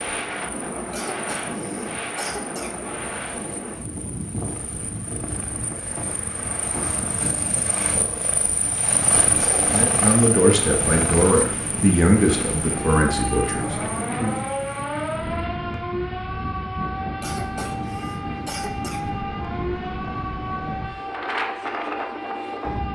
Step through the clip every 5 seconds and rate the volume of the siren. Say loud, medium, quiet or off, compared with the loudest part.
off, off, loud, loud, loud.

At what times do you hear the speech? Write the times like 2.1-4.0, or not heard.
9.7-14.4.